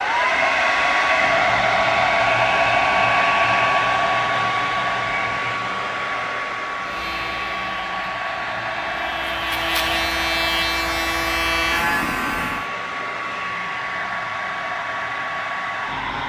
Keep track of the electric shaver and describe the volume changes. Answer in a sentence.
The loudness of the electric shaver goes up.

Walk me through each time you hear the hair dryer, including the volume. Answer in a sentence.
The hair dryer can be heard from 0.0 to 16.2 s, getting quieter.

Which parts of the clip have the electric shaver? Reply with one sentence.
The electric shaver can be heard from 6.8 to 12.7 s.